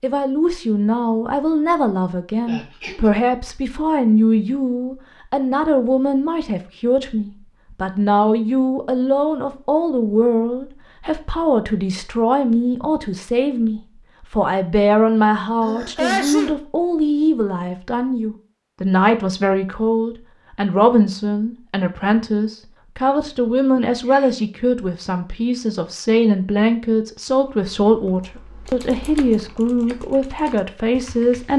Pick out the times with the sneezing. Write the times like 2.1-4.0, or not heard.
2.5-3.1, 15.6-16.6, 23.8-24.4.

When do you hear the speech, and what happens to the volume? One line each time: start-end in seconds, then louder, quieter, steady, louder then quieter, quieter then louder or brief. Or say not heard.
0.0-31.5 steady.